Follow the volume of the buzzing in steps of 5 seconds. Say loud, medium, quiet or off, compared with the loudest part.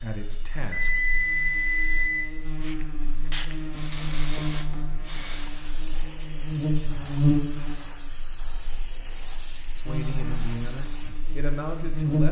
medium, loud, loud.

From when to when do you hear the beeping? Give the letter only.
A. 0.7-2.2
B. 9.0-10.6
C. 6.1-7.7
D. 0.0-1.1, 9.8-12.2
A.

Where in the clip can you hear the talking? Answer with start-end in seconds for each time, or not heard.
0.0-1.1, 9.8-12.2.